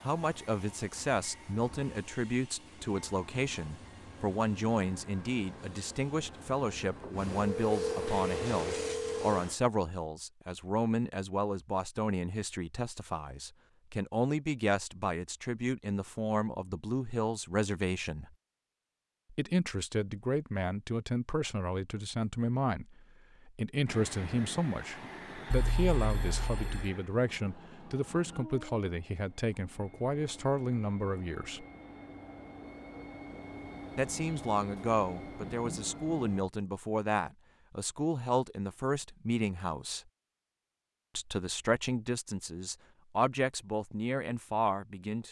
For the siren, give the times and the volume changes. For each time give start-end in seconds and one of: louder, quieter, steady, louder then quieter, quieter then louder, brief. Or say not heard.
not heard.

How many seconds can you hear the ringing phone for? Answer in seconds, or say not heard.
3 s.